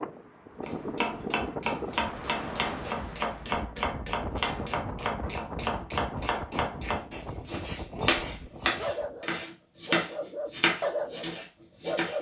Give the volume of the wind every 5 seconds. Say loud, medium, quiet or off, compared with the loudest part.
loud, loud, off.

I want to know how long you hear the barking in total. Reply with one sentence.
The barking can be heard for 4 seconds in total.